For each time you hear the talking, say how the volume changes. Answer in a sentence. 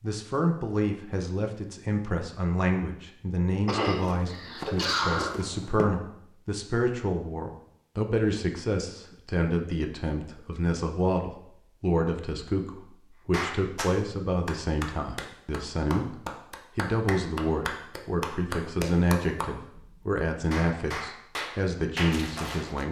The talking can be heard from 0.0 to 22.8 s, at a steady volume.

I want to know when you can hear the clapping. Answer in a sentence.
The clapping can be heard from 13.3 to 22.8 s.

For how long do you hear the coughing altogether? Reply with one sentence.
The coughing can be heard for 2 seconds in total.